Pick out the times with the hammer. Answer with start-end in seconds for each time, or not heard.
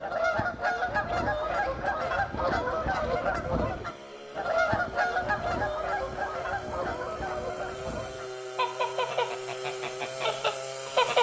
not heard.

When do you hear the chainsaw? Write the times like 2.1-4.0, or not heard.
0.0-11.1.